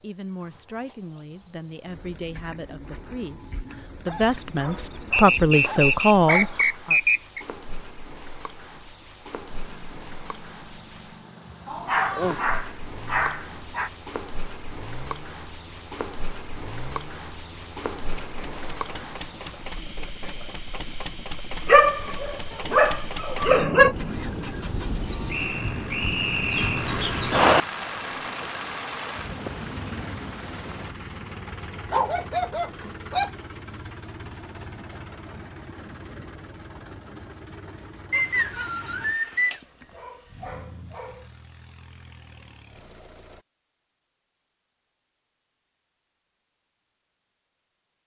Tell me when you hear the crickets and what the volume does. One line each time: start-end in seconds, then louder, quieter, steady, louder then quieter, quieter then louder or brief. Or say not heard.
0.0-30.9 louder.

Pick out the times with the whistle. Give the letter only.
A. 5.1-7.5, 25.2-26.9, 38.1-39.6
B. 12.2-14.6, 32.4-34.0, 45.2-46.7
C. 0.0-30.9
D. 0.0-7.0
A.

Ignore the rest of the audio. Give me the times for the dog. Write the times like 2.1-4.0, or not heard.
4.0-6.5, 11.7-13.9, 21.6-23.9, 31.9-33.3, 39.3-41.2.